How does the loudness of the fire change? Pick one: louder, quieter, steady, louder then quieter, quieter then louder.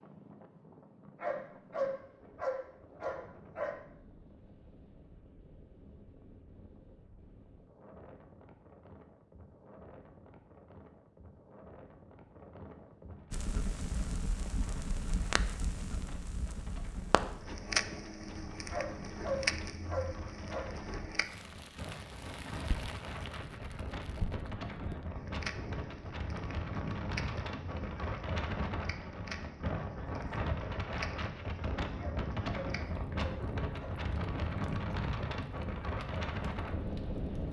quieter.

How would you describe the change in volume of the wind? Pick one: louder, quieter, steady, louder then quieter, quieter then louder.
louder.